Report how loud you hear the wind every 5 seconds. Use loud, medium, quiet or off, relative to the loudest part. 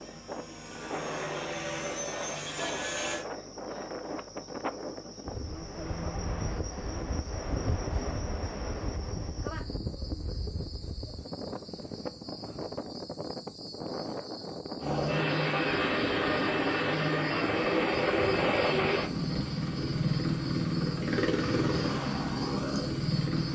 loud, loud, loud, loud, off.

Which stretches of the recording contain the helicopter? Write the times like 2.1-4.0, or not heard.
0.0-3.2, 14.8-23.5.